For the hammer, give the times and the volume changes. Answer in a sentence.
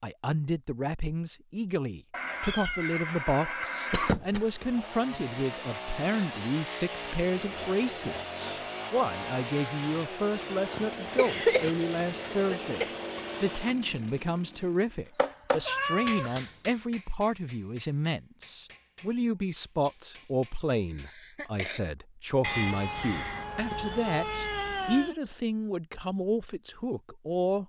You can hear the hammer from 15.2 to 21.2 s, getting quieter.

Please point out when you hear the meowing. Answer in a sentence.
The meowing can be heard from 2.1 to 4.2 s, from 15.7 to 16.6 s and from 22.4 to 25.2 s.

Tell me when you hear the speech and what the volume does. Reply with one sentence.
You can hear the speech from 0.0 to 27.6 s, at a steady volume.